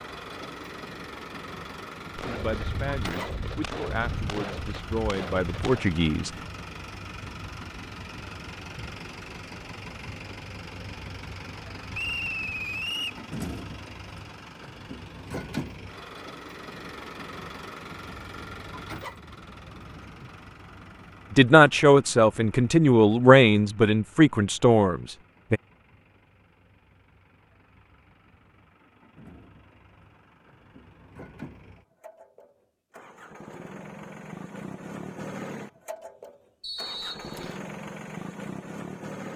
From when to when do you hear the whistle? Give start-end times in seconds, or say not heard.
11.9-13.2, 36.6-37.5.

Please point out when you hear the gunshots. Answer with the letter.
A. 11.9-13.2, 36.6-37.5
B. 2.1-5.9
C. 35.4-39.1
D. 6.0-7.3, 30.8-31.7
B.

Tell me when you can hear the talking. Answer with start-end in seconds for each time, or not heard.
2.2-6.3, 21.3-25.6.